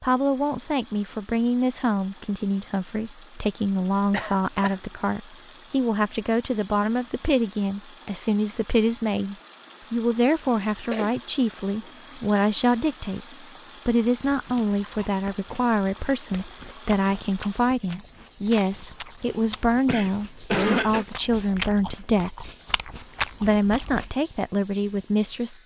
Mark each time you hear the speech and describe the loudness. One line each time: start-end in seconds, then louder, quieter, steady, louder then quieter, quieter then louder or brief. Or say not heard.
0.0-22.4 steady
23.4-25.6 brief.